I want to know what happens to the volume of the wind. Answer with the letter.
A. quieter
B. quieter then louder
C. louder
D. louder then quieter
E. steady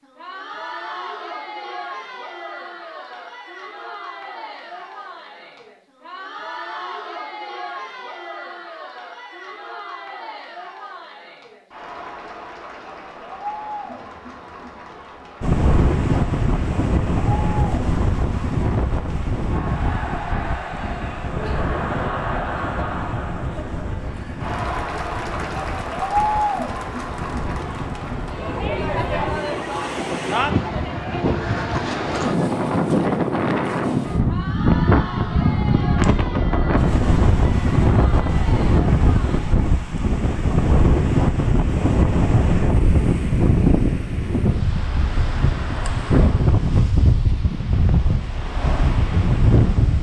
B.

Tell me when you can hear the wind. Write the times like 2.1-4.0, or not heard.
15.4-49.9.